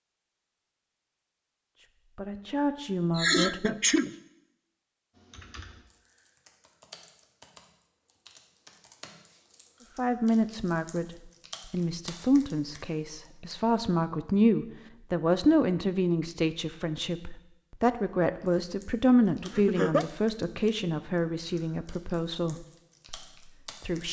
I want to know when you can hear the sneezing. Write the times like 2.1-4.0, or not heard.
3.1-4.2, 19.4-20.1.